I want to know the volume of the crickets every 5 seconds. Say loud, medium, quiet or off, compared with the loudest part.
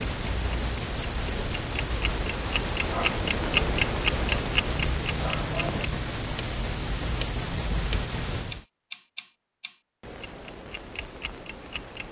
loud, loud, off.